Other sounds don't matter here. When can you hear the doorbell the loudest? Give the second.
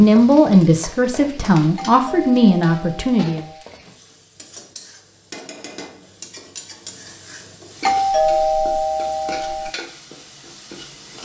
8 s.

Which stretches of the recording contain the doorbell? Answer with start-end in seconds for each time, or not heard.
1.8-3.6, 7.8-9.7.